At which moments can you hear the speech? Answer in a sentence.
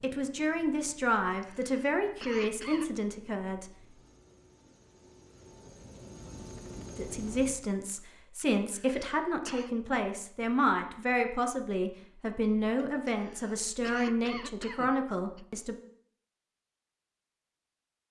The speech can be heard from 0.0 to 3.7 s and from 7.0 to 15.8 s.